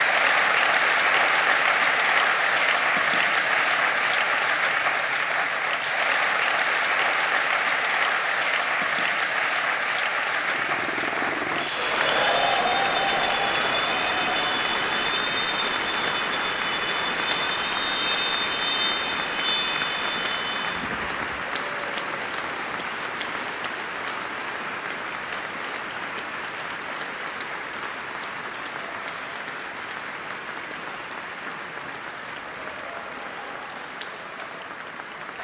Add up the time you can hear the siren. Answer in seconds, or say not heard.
not heard.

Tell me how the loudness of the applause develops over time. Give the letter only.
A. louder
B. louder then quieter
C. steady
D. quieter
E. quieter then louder
D.